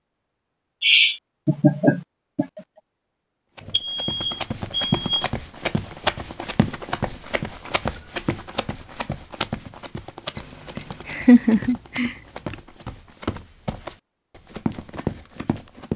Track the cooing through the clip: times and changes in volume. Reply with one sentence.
The cooing can't be heard in this clip.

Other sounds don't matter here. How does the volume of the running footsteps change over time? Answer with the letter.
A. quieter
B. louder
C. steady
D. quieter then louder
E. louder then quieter
D.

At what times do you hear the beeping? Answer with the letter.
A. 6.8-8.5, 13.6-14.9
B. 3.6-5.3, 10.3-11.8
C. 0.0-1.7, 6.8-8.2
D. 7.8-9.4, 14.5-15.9
B.